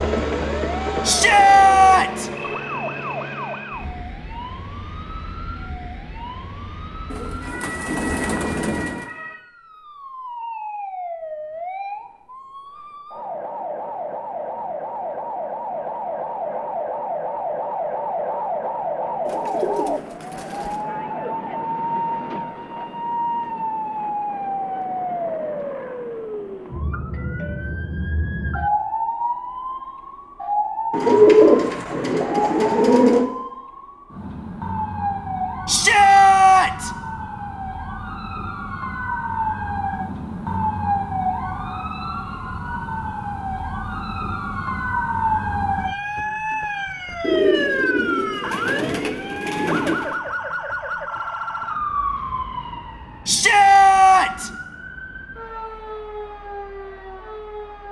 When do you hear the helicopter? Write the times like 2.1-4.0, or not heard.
0.0-4.0.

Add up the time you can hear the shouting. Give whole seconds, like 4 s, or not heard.
4 s.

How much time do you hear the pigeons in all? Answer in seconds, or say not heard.
9 s.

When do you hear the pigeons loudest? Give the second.
31 s.